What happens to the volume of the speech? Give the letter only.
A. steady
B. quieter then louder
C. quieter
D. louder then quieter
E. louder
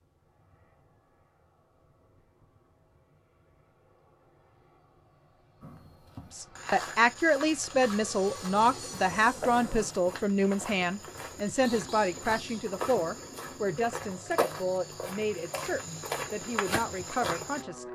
C.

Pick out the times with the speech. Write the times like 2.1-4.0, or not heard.
6.3-17.9.